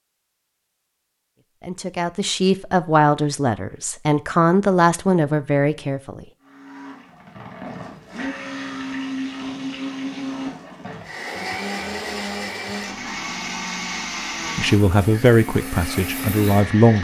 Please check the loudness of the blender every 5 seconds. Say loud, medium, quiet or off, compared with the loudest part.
off, loud, loud, loud.